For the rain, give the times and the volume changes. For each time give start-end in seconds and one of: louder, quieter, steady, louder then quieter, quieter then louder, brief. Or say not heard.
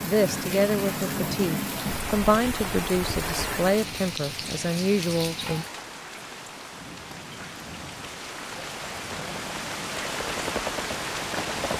0.0-11.7 quieter then louder.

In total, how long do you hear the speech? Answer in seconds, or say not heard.
6 s.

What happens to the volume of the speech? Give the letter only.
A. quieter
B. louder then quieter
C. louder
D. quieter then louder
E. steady
E.